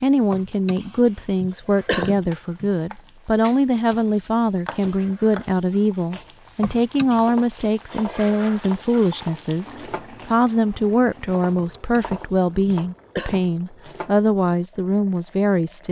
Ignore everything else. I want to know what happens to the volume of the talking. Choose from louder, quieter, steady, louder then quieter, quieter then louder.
steady.